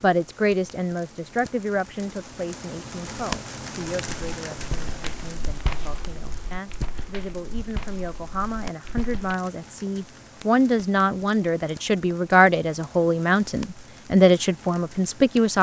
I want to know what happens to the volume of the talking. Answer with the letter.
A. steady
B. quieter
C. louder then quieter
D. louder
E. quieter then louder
E.